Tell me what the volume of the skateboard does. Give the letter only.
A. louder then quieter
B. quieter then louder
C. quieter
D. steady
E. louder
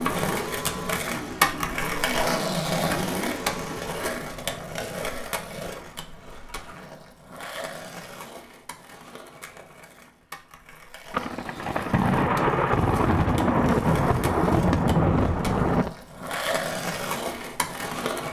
B.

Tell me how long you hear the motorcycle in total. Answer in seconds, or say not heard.
4 s.